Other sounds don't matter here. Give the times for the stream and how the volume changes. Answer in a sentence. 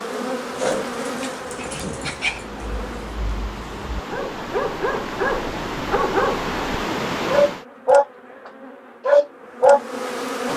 The stream can be heard from 0.0 to 7.7 s, getting louder.